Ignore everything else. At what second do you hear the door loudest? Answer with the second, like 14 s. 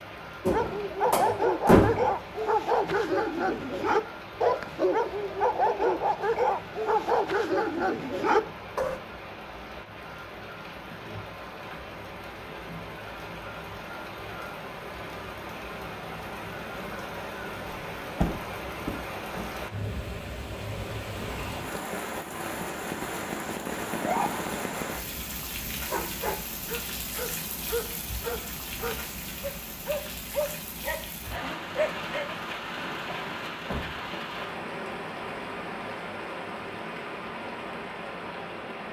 2 s.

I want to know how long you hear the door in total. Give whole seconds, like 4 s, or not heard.
4 s.